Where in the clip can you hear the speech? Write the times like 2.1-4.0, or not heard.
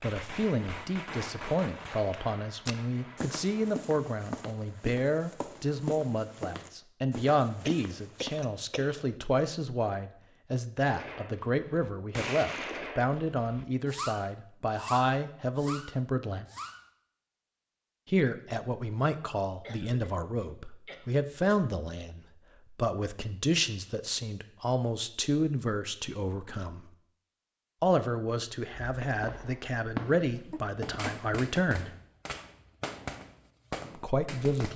0.0-16.4, 18.1-26.9, 27.8-31.9, 33.9-34.7.